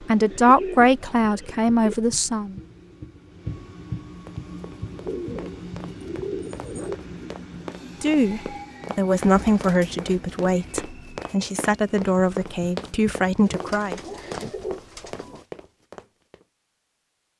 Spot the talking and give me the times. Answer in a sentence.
The talking can be heard from 0.0 to 2.6 s and from 8.0 to 14.0 s.